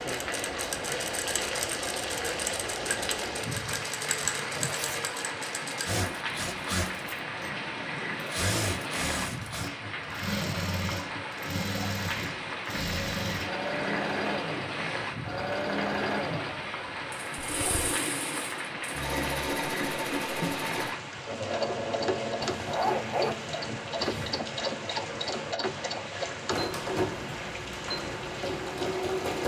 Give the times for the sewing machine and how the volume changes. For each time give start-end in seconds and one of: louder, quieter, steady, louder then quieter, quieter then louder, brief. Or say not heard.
0.0-29.4 steady.